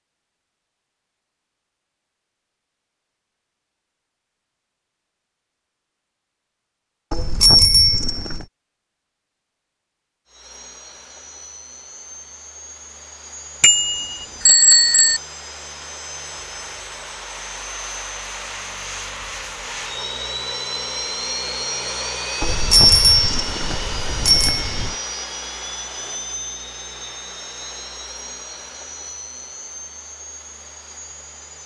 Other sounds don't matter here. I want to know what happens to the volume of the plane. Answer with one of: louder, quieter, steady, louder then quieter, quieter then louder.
louder then quieter.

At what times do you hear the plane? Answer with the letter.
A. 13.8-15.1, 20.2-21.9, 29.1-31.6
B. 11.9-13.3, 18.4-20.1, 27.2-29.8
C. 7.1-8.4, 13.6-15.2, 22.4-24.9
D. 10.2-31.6
D.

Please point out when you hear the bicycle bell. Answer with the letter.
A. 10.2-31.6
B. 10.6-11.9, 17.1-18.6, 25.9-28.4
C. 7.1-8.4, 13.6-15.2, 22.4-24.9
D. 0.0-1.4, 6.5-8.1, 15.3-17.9
C.